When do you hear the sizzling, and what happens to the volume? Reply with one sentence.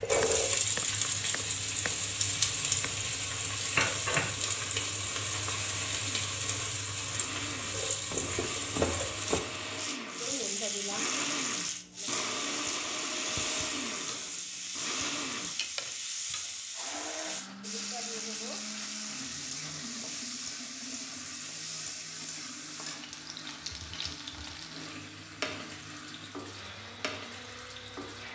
You can hear the sizzling from 0.0 to 28.2 s, getting quieter.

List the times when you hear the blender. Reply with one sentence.
The blender can be heard from 0.0 to 28.2 s.